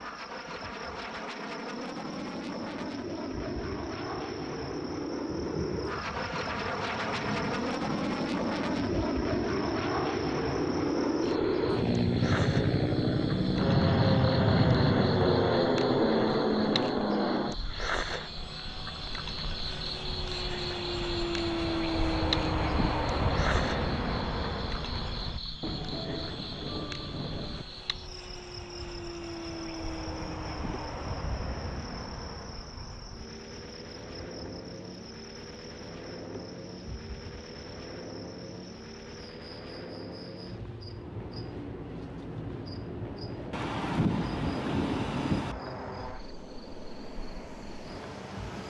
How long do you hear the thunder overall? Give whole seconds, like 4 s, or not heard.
8 s.